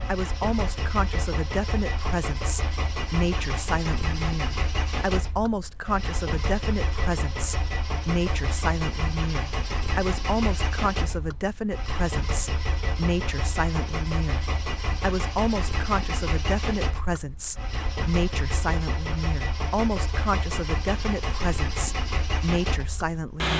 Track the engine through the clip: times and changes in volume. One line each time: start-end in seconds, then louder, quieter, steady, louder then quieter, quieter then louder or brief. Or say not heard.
0.0-23.5 steady.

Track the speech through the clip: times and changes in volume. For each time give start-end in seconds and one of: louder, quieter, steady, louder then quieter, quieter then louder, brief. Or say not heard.
0.1-23.5 steady.